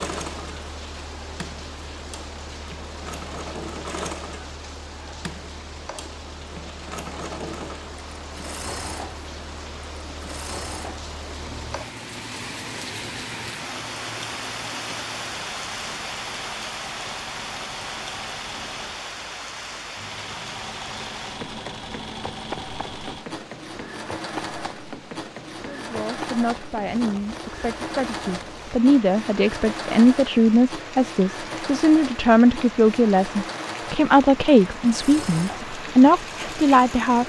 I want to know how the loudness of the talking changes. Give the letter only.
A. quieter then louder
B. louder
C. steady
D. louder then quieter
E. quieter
B.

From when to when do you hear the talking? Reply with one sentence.
The talking can be heard from 25.7 to 37.2 s.